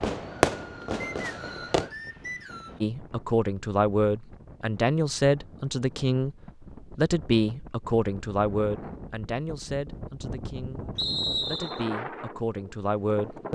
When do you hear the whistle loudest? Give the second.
11 s.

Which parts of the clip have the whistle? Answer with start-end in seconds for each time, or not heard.
1.0-2.8, 10.9-11.8.